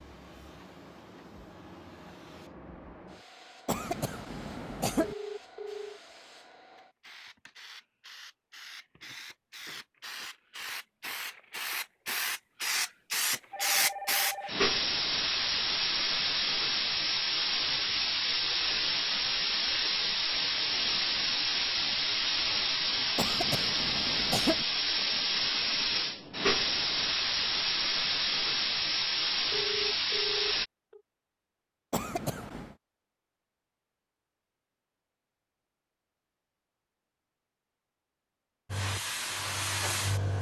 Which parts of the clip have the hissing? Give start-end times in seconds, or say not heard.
0.0-30.6, 38.6-40.3.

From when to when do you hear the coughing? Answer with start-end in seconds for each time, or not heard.
3.6-5.2, 23.1-24.6, 31.9-32.8.